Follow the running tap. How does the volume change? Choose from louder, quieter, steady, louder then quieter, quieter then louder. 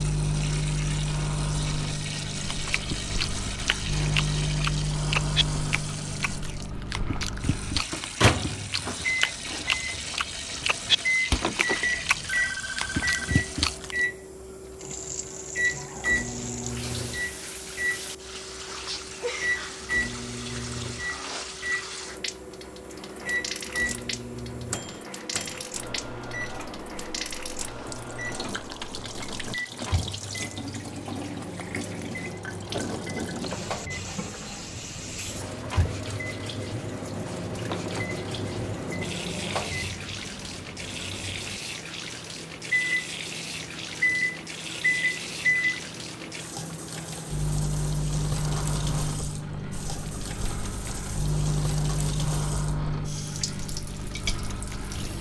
steady.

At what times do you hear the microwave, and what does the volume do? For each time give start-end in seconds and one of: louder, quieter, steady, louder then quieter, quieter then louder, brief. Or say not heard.
0.0-55.1 quieter then louder.